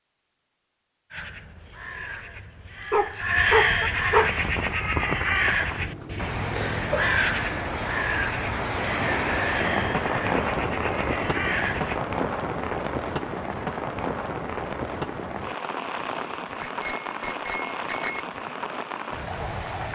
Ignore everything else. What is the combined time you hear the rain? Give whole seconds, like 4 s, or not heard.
16 s.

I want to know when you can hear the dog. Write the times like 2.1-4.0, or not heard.
2.9-4.3.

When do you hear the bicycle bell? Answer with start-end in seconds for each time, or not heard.
2.8-3.9, 6.9-7.8, 16.6-18.2.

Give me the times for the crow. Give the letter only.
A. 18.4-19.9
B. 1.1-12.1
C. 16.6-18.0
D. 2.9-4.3
B.